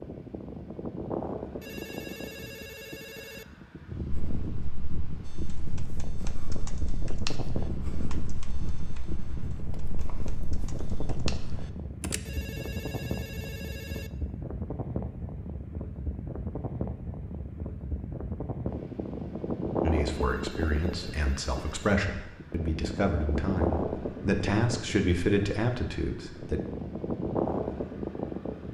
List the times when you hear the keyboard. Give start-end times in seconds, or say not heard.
5.2-12.2.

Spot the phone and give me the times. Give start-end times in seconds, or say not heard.
1.6-3.5, 12.2-14.1, 20.1-21.8.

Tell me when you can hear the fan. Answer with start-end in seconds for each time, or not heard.
0.0-28.6.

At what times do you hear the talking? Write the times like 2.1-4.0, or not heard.
19.8-26.6.